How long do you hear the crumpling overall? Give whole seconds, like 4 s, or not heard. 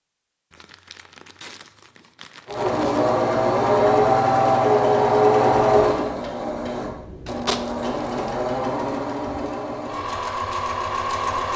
4 s.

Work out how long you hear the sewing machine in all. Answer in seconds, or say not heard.
9 s.